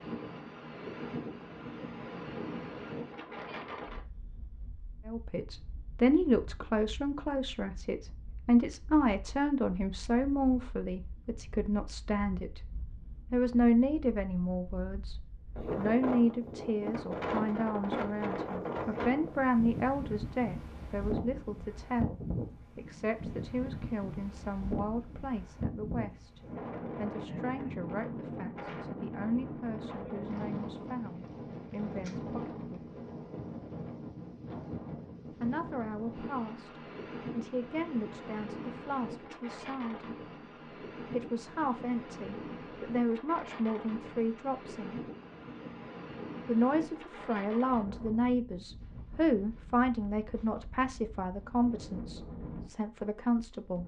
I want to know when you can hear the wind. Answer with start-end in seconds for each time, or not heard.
0.0-53.8.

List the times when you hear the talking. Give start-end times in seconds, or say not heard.
5.0-12.6, 13.3-15.2, 15.8-32.8, 35.3-40.0, 41.0-45.0, 46.5-53.8.